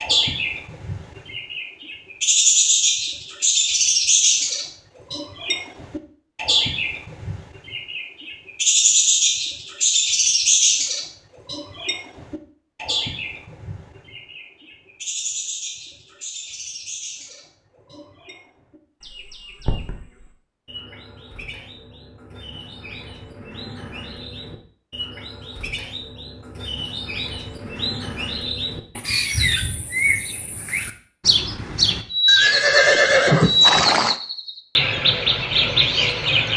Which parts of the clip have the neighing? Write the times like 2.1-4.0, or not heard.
32.2-34.1.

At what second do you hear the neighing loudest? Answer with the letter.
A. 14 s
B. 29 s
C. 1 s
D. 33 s
D.